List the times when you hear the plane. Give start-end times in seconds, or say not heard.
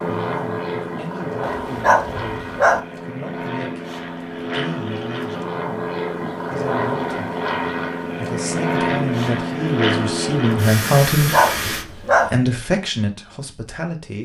0.0-11.8.